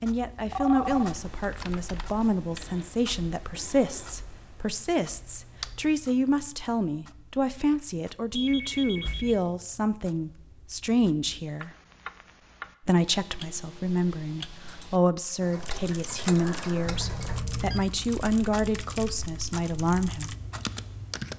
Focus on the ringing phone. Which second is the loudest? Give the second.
1 s.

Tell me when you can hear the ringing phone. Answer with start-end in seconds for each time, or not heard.
0.5-1.1, 8.3-9.4, 16.9-17.9.